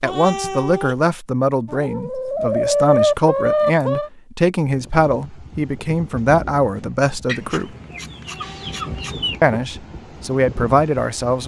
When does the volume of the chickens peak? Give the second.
3 s.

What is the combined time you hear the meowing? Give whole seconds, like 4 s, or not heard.
2 s.